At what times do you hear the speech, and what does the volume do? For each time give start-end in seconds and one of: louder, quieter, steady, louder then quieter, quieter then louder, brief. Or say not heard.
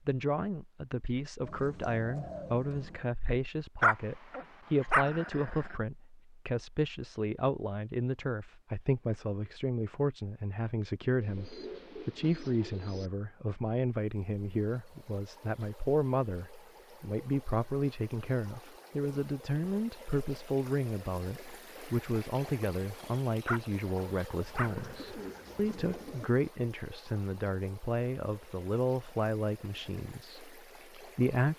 0.1-31.5 steady.